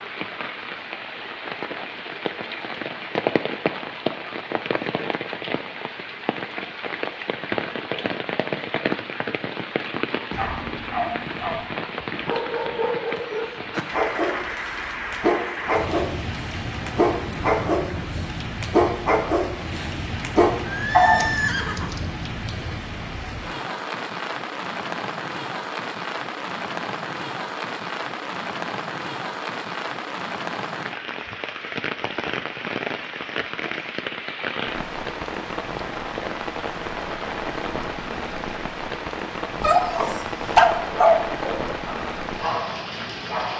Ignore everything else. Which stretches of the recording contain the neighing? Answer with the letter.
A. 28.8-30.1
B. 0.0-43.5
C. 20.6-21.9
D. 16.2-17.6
C.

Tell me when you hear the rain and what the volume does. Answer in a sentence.
The rain can be heard from 0.0 to 43.5 s, at a steady volume.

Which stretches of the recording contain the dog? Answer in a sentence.
The dog can be heard from 10.3 to 22.0 s and from 39.6 to 43.5 s.